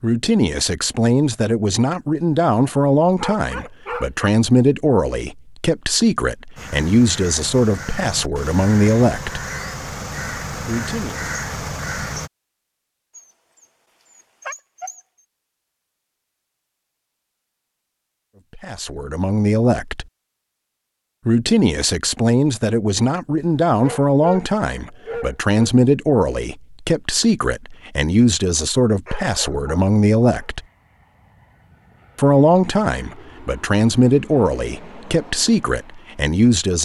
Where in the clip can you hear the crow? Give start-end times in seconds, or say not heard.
6.5-12.3.